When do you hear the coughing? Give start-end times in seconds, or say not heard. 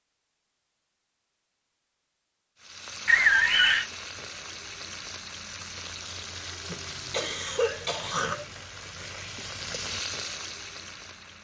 3.0-3.9, 6.7-8.5.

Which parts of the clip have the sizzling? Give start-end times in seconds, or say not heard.
2.6-11.3.